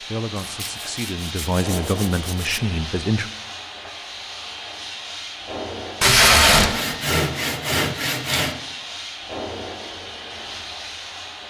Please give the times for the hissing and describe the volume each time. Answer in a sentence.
The hissing can be heard from 0.0 to 11.4 s, at a steady volume.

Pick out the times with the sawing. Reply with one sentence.
You can hear the sawing from 0.6 to 2.5 s and from 6.5 to 8.6 s.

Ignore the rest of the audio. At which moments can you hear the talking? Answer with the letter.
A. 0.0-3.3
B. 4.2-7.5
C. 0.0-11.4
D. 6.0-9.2
A.